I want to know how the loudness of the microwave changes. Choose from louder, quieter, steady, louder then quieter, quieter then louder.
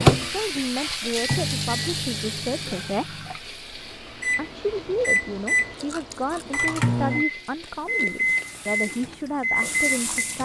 quieter then louder.